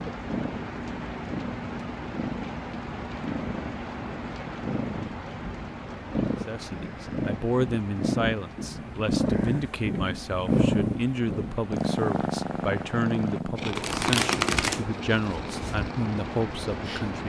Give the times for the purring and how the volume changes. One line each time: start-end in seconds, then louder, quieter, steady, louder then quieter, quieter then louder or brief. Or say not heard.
0.1-17.2 louder then quieter.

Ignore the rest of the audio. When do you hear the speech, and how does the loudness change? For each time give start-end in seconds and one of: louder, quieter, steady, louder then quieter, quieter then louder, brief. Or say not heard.
6.5-17.2 steady.